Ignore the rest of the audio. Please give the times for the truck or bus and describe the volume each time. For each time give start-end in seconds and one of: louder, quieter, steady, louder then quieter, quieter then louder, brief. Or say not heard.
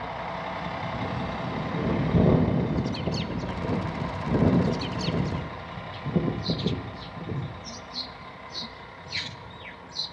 0.0-10.0 quieter.